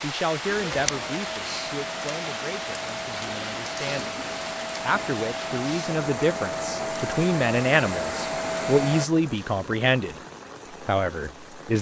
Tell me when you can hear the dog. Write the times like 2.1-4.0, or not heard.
not heard.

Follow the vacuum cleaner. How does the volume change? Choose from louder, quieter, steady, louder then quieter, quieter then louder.
louder.